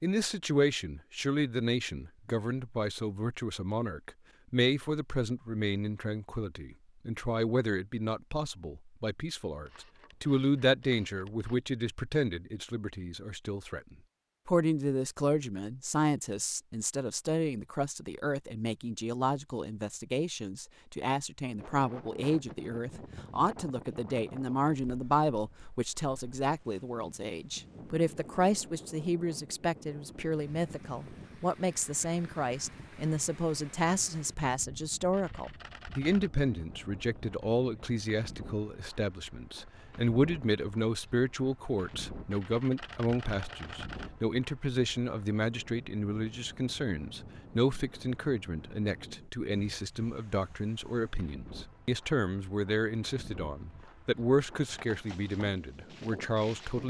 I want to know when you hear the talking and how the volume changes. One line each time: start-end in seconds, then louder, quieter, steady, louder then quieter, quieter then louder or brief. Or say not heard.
0.0-56.8 steady.